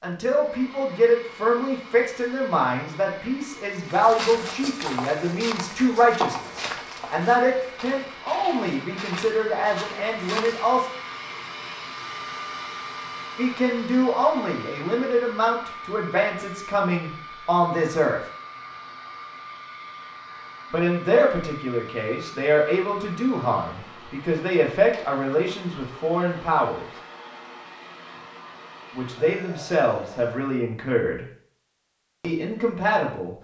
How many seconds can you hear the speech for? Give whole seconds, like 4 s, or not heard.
25 s.